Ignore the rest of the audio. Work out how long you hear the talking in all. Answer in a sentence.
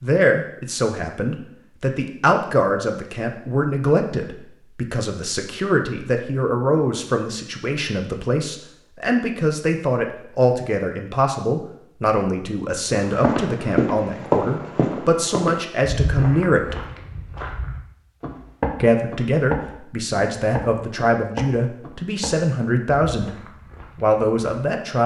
The talking can be heard for 23 seconds in total.